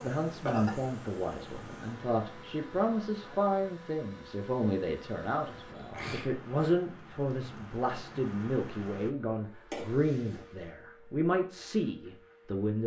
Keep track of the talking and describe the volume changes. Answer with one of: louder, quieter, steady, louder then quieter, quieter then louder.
steady.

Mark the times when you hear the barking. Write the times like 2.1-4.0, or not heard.
not heard.